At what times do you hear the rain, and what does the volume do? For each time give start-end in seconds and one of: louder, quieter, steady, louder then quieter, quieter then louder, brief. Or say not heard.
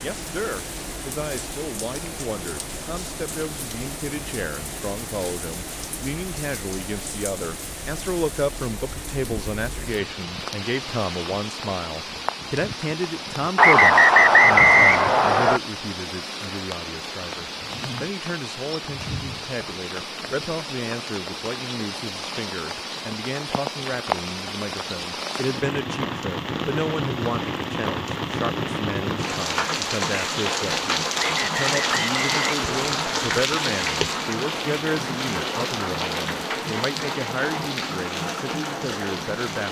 0.0-39.6 louder.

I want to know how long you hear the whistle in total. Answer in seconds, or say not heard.
4 s.